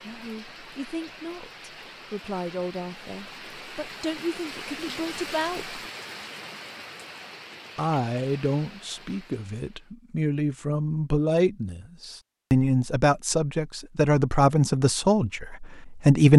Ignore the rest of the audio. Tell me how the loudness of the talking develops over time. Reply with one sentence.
The loudness of the talking goes up.